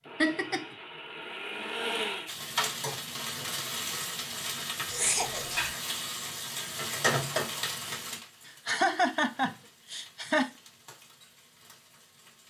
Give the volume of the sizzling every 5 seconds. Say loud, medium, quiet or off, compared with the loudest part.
loud, loud, quiet.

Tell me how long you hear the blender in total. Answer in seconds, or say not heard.
2 s.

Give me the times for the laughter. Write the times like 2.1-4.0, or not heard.
0.2-0.7, 4.9-5.7, 8.4-10.5.